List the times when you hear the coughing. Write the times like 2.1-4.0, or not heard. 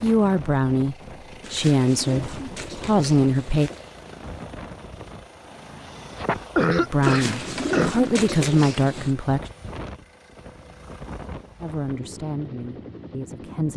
5.7-8.0.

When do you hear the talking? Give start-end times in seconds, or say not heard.
0.0-3.7, 6.8-9.4, 11.6-13.7.